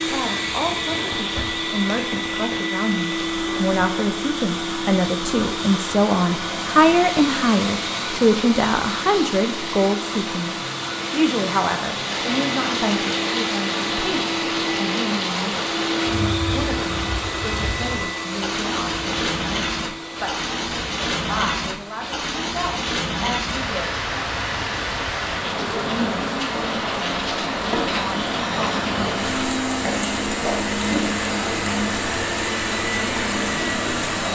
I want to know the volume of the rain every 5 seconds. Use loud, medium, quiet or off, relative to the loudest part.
medium, medium, loud, loud, loud, loud, loud.